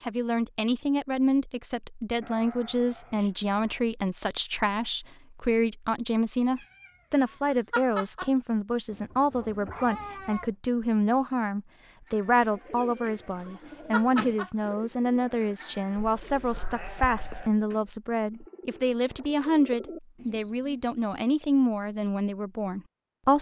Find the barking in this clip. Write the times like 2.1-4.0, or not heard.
not heard.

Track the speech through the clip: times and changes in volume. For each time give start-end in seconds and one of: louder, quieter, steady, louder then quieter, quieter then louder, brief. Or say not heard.
0.0-23.3 steady.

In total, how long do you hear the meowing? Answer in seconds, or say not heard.
4 s.